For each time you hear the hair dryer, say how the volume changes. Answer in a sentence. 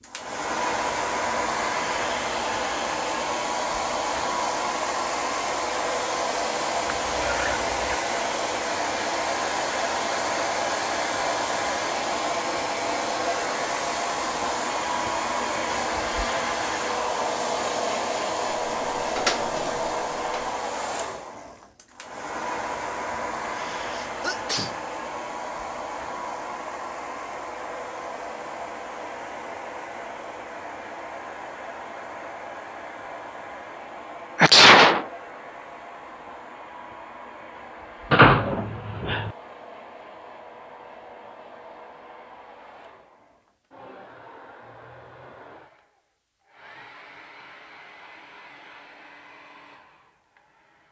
You can hear the hair dryer from 0.0 to 50.8 s, getting quieter.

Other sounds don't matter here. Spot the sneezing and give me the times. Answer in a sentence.
You can hear the sneezing from 6.8 to 8.0 s, from 23.4 to 24.8 s and from 34.4 to 35.0 s.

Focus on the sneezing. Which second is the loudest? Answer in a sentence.
The volume of the sneezing peaks at 35 seconds.